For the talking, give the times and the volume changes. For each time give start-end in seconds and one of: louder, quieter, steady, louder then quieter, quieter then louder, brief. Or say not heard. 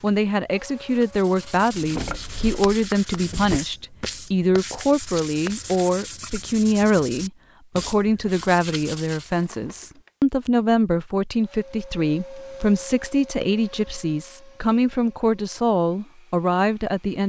0.0-17.2 steady.